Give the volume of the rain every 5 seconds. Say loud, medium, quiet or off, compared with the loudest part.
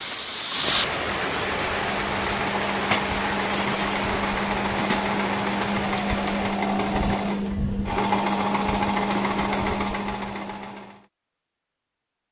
loud, medium, off.